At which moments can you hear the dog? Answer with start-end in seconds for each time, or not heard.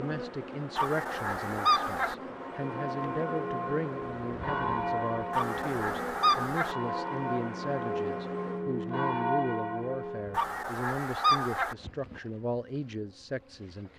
not heard.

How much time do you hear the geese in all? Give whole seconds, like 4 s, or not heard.
4 s.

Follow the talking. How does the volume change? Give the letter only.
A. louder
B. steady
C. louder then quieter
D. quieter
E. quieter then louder
B.